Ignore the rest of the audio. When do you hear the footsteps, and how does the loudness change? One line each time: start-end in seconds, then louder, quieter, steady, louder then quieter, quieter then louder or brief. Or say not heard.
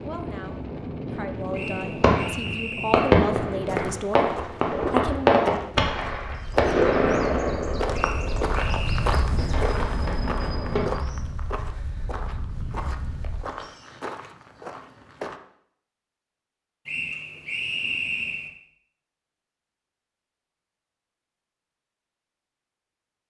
3.6-15.4 louder then quieter.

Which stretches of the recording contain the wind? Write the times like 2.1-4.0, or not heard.
0.0-13.4.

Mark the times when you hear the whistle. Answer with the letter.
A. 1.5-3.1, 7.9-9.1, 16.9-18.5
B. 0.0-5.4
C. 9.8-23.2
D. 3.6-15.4
A.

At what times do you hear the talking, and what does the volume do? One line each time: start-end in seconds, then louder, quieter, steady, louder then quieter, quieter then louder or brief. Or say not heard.
0.0-5.4 louder.